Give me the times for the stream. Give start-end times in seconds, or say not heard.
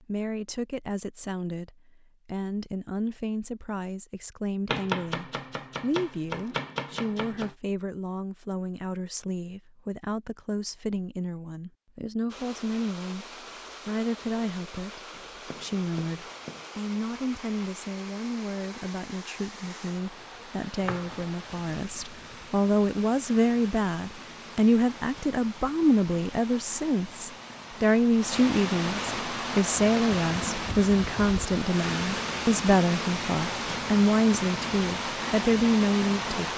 12.2-36.5.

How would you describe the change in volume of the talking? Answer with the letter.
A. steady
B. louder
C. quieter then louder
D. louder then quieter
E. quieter
B.